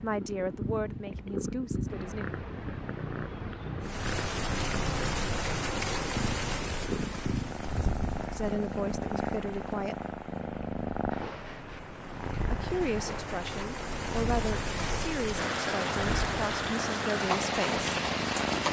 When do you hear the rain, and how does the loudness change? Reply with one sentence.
You can hear the rain from 3.8 to 18.6 s, getting quieter then louder.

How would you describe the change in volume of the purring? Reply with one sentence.
The loudness of the purring stays about the same.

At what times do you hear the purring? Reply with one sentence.
The purring can be heard from 0.0 to 18.6 s.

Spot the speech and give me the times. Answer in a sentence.
The speech can be heard from 0.0 to 2.2 s, from 8.3 to 10.2 s and from 12.5 to 17.9 s.